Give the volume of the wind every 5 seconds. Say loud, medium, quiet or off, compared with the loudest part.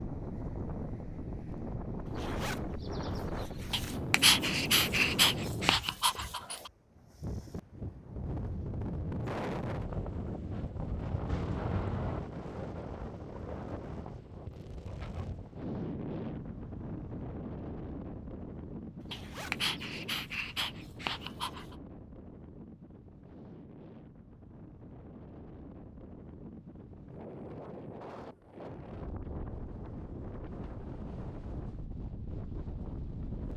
loud, loud, loud, loud, medium, medium, medium.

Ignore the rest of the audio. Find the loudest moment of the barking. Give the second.
4 s.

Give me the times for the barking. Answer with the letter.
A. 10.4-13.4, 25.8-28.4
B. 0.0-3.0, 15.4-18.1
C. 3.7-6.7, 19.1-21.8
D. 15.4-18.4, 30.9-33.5
C.